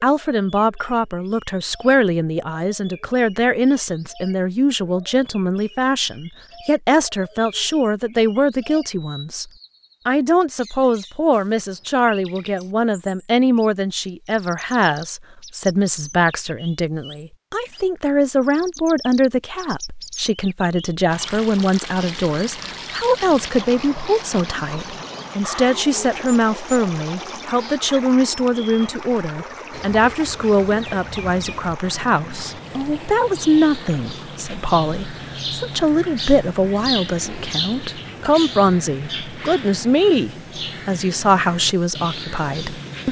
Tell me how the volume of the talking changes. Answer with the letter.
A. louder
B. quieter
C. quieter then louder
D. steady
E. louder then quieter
D.